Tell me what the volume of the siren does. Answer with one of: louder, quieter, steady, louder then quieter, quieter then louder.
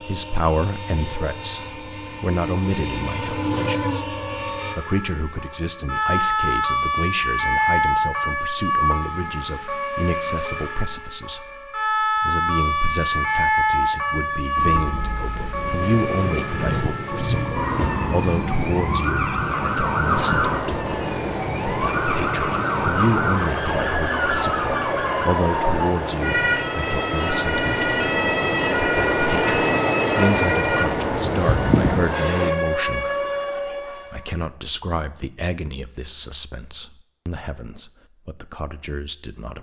steady.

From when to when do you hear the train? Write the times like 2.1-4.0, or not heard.
0.0-4.8, 14.6-32.5.